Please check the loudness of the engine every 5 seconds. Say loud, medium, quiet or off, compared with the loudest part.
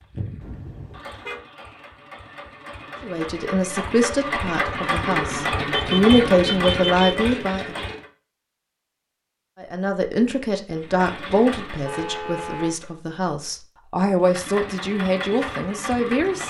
medium, loud, medium, medium.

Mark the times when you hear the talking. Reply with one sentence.
You can hear the talking from 3.0 to 7.8 s and from 9.6 to 16.4 s.